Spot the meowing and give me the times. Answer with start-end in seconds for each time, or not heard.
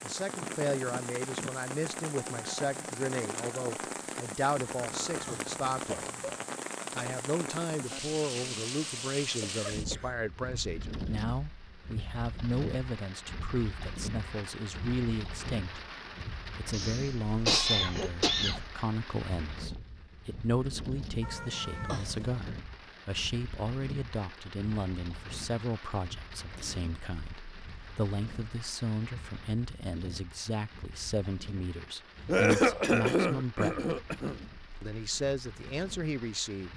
4.8-6.4, 21.2-22.4.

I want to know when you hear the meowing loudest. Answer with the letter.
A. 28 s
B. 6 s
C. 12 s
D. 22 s
D.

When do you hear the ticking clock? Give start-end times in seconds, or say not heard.
not heard.